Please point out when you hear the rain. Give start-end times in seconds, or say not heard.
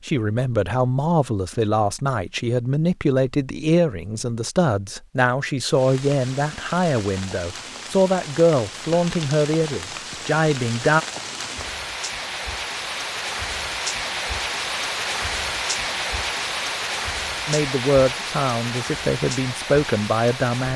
5.7-20.7.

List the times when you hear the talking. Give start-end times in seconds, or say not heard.
0.1-11.1, 17.4-20.7.